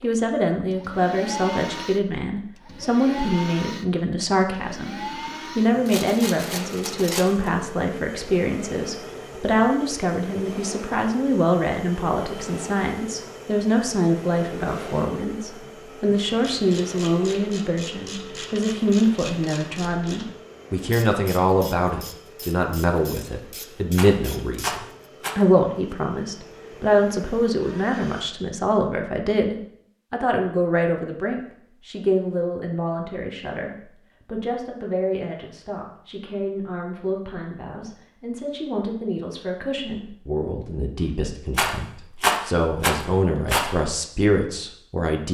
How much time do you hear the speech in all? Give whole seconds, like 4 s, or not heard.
45 s.